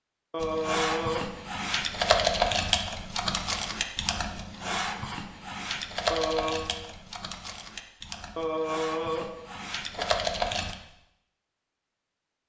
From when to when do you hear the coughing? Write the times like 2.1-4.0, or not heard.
0.3-1.3, 6.1-6.7, 8.3-10.2.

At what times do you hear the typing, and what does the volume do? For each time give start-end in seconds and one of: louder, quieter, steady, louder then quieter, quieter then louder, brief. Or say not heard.
0.4-10.8 quieter then louder.